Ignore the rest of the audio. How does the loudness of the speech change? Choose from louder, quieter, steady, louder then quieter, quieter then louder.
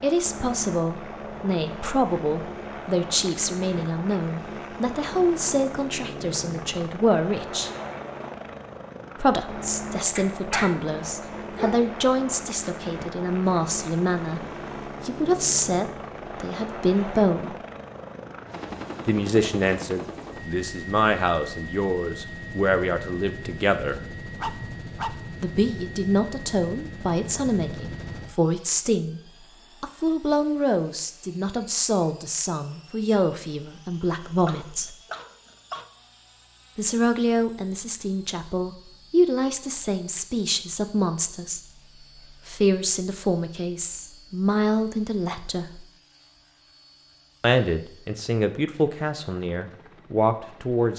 steady.